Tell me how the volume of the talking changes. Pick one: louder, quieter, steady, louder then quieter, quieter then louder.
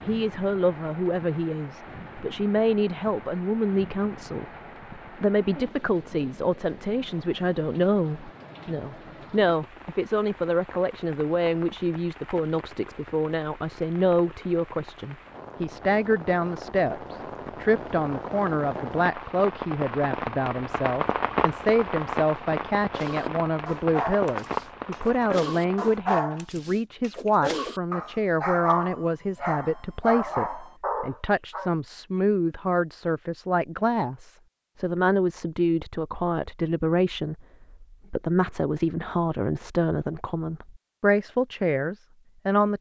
steady.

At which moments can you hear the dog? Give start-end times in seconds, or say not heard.
22.9-31.7.